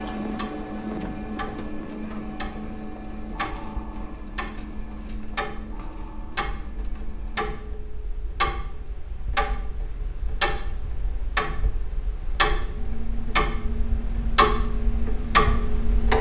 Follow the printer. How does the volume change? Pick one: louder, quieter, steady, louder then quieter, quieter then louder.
quieter.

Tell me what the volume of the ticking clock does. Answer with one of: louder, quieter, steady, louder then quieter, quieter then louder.
louder.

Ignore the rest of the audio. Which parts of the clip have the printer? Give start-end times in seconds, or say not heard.
0.0-8.0.